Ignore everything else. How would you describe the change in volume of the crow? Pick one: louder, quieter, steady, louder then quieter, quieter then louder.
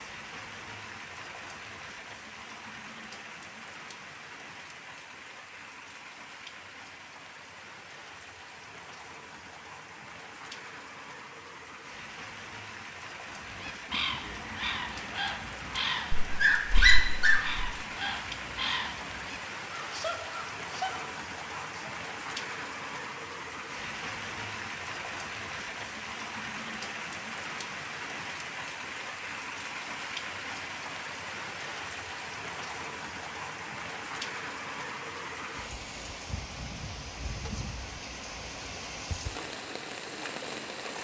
steady.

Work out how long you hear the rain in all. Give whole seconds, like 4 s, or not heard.
41 s.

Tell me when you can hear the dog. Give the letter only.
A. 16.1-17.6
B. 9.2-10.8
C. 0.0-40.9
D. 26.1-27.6
A.